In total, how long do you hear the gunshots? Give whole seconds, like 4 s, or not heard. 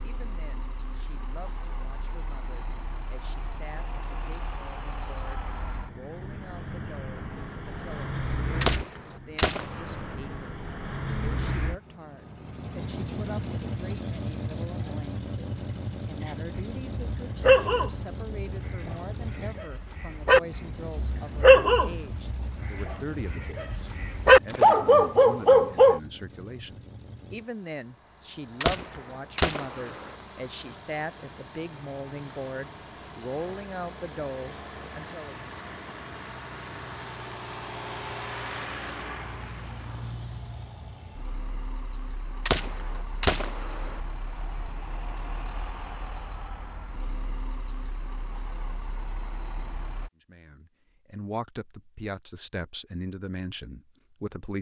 5 s.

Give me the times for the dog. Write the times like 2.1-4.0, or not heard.
16.2-26.0.